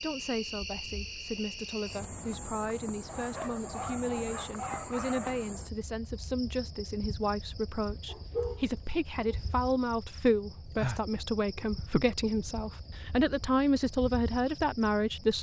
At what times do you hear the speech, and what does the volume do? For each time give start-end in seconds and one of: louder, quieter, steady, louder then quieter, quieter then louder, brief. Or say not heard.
0.0-15.3 louder.